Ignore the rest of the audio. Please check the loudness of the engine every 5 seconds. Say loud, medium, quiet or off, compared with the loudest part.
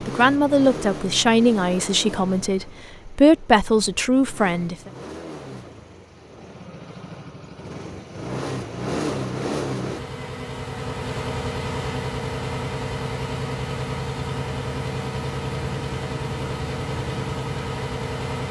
medium, loud, loud, loud.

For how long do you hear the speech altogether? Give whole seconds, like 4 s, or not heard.
5 s.